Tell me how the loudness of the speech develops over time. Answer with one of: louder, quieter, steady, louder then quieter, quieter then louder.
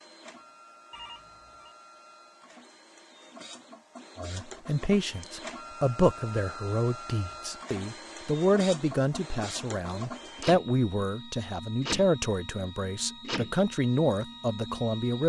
steady.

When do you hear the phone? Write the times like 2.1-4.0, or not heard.
0.9-1.8.